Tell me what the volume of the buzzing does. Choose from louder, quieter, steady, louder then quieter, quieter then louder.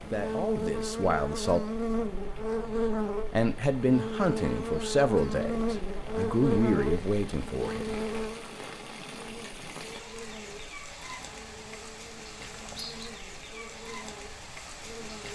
quieter.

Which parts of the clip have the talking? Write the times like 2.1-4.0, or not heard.
0.1-1.6, 3.3-8.0.